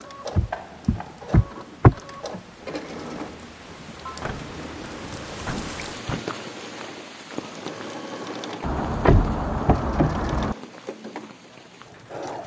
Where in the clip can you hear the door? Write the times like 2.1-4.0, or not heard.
0.3-2.4, 4.2-6.2, 8.6-10.6.